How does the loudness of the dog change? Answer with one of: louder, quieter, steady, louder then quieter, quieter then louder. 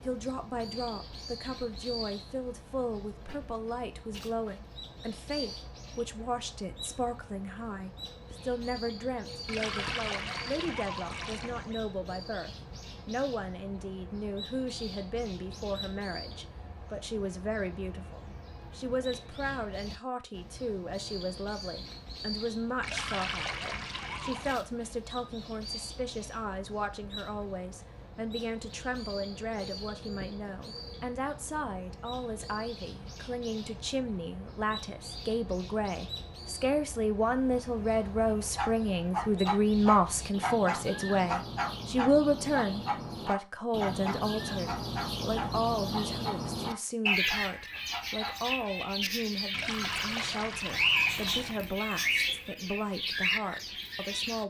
quieter.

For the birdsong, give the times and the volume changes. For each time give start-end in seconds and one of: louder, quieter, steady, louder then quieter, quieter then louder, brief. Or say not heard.
0.0-54.4 louder.